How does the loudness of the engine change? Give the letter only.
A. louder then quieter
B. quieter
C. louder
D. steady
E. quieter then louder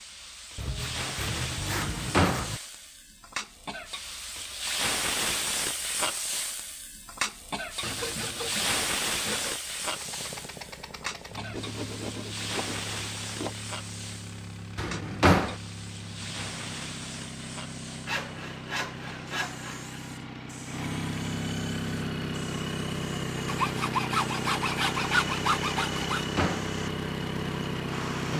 C.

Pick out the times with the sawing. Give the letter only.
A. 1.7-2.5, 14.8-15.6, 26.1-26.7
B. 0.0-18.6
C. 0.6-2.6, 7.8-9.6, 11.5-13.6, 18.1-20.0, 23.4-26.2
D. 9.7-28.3
C.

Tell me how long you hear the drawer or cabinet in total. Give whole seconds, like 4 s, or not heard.
2 s.